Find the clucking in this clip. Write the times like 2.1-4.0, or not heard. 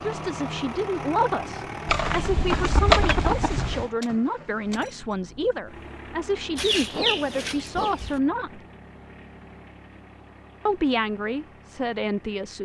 1.9-3.9, 6.5-8.2.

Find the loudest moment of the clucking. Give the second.
3 s.